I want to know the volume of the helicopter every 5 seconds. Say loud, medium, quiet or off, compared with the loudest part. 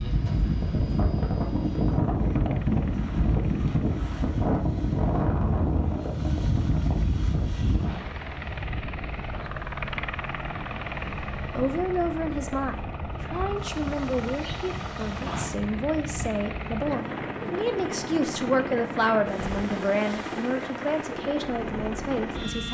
quiet, loud, loud, loud, loud.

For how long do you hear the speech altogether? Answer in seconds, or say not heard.
11 s.